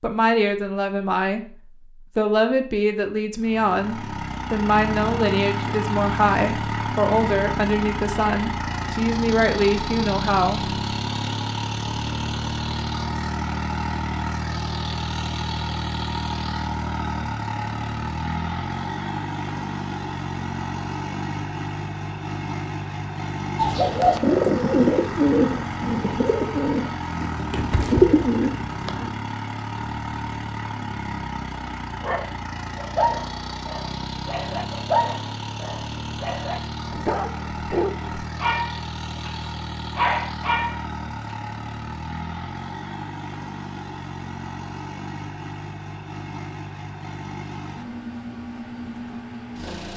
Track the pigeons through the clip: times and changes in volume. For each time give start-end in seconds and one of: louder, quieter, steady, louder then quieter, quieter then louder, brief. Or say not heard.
23.6-29.1 quieter then louder.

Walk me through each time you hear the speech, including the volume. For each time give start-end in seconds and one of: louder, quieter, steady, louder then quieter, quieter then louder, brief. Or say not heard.
0.0-1.4 brief
2.1-10.7 steady.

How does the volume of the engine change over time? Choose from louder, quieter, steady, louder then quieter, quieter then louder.
quieter.